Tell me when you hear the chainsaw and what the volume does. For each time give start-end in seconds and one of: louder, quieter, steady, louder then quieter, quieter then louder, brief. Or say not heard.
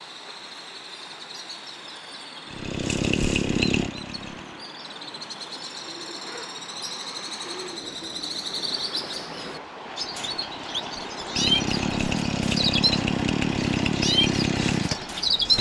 2.5-4.7 brief
9.8-15.5 louder.